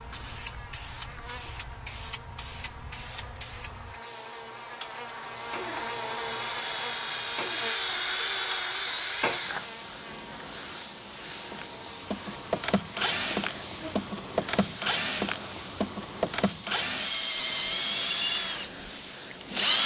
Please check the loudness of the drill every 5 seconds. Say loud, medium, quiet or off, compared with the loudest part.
off, loud, loud, loud.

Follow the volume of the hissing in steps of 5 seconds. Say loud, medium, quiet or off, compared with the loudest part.
medium, loud, loud, loud.